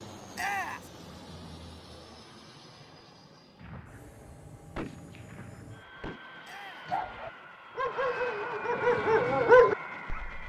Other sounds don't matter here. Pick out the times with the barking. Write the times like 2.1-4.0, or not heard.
6.8-10.3.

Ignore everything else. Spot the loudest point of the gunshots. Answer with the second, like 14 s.
5 s.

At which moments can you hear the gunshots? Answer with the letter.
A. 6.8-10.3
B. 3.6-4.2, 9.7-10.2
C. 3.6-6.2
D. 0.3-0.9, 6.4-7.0
C.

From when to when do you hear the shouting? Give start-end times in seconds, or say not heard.
0.3-0.9, 6.4-7.0.